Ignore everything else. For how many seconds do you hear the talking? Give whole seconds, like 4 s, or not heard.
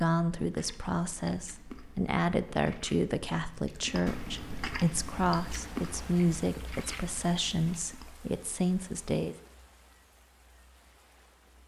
9 s.